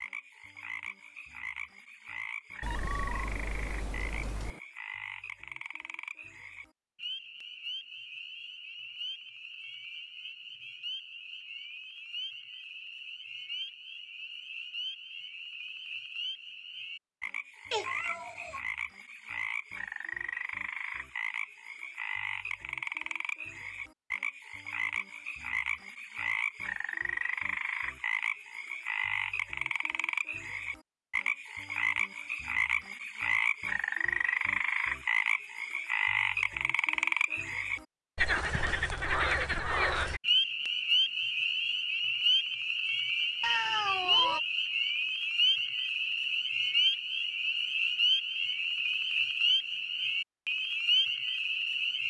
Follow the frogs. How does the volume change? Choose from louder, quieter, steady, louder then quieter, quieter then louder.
louder.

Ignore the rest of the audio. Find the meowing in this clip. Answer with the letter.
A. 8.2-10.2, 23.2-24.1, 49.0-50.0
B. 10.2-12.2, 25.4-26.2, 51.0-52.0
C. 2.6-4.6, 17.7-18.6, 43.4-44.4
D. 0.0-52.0
C.